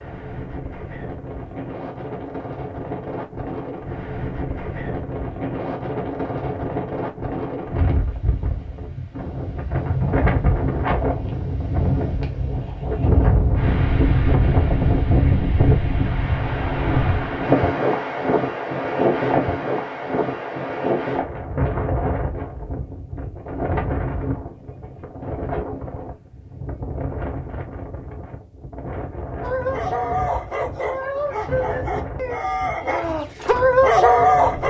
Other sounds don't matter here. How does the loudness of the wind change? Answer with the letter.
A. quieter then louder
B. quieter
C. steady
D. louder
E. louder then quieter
E.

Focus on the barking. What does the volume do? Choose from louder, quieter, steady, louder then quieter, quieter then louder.
louder.